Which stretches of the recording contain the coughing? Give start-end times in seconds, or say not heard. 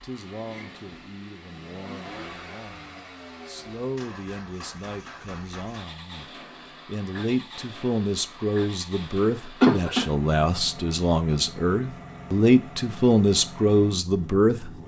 9.6-10.0.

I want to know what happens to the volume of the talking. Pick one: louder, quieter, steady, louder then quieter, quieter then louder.
louder.